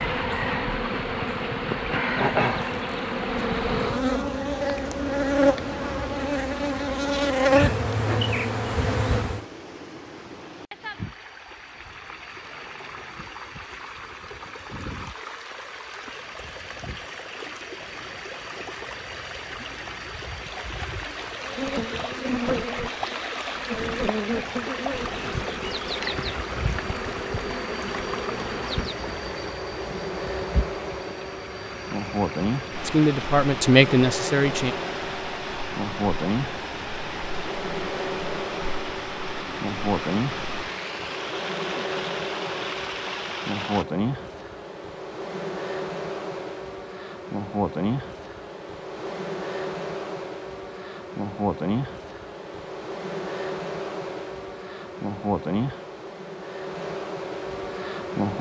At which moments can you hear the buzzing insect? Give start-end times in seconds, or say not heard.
0.0-9.4, 21.4-58.3.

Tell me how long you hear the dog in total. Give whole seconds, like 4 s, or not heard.
not heard.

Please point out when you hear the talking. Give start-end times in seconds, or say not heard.
32.9-34.8.